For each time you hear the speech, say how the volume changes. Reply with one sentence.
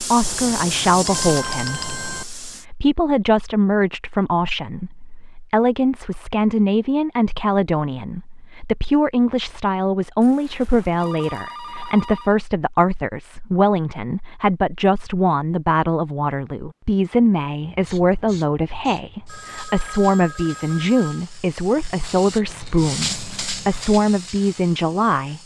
The speech can be heard from 0.0 to 25.4 s, at a steady volume.